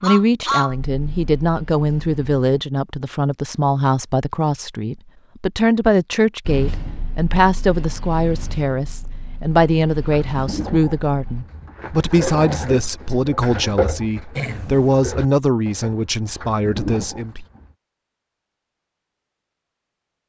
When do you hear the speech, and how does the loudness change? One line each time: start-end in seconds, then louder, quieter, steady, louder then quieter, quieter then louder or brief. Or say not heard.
0.0-17.4 steady.